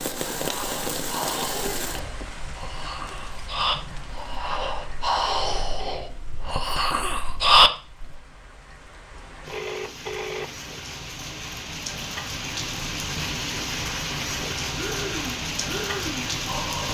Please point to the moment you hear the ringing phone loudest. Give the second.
10 s.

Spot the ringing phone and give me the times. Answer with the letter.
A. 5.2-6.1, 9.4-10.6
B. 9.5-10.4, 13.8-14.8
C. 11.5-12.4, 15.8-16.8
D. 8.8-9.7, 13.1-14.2
A.